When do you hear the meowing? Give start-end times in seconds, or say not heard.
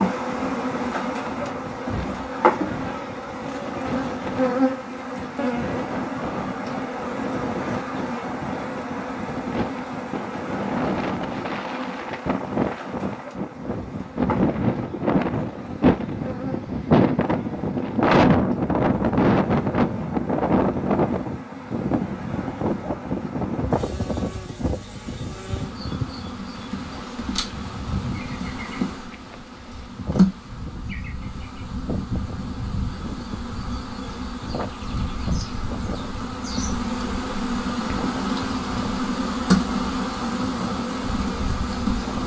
not heard.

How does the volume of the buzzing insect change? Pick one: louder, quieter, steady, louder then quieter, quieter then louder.
quieter then louder.